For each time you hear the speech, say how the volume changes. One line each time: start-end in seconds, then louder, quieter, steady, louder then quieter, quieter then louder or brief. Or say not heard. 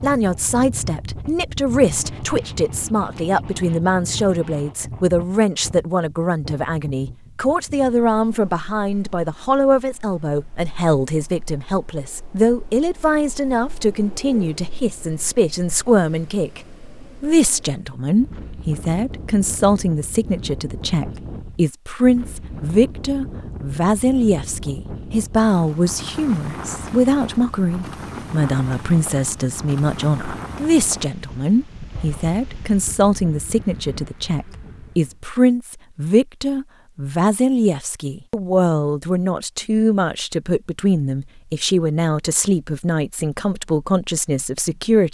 0.0-16.6 steady
17.2-45.0 steady.